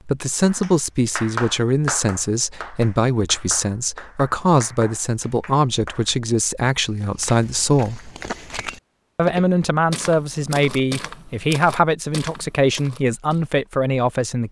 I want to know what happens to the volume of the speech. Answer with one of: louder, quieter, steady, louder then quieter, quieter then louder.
steady.